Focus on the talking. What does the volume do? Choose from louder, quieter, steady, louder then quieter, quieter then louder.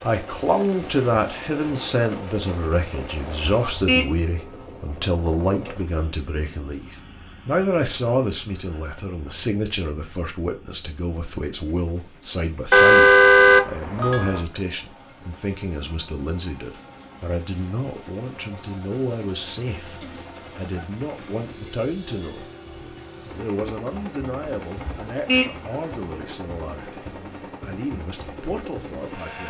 quieter.